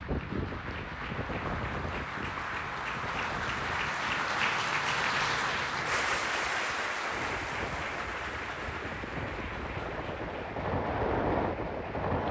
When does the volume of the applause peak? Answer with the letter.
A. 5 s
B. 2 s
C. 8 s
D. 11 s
A.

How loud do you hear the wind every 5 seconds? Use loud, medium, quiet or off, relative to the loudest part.
medium, medium, loud.